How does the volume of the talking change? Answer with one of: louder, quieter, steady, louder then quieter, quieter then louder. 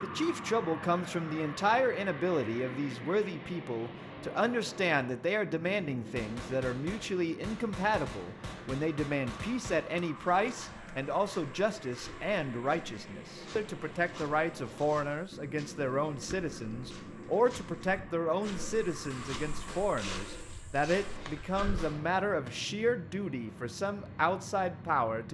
steady.